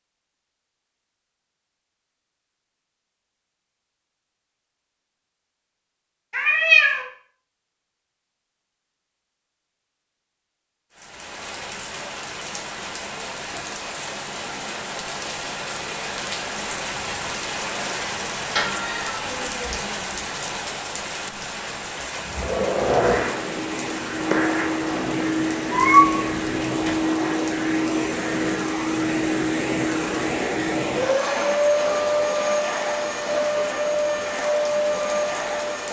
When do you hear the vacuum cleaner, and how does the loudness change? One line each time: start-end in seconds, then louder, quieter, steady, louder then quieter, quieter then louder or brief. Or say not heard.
21.9-35.8 steady.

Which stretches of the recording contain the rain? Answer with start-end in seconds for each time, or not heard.
10.9-35.8.